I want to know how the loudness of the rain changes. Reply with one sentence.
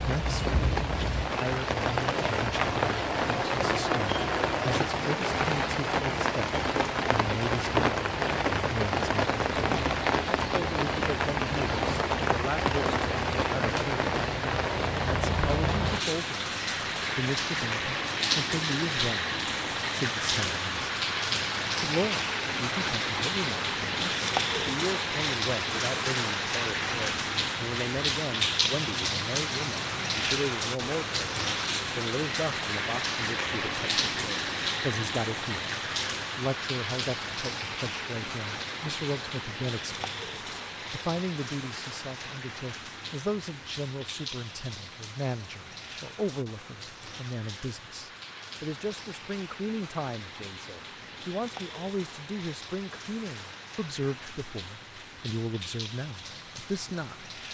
The volume of the rain goes down.